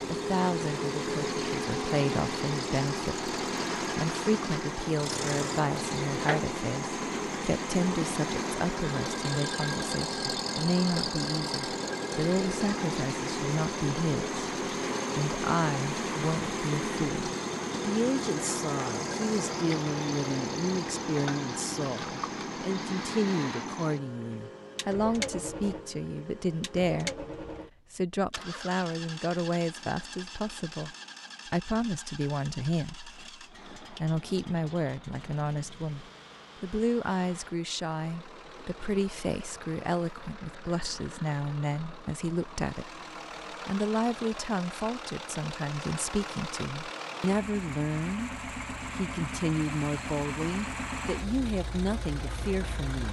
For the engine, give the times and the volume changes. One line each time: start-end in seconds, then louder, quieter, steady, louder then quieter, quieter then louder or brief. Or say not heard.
0.0-53.0 quieter then louder.